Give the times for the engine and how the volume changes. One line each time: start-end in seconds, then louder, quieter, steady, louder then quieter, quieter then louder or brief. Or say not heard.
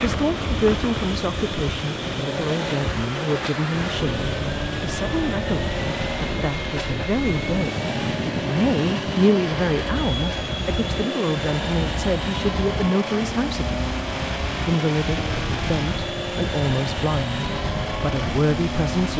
0.0-19.1 steady.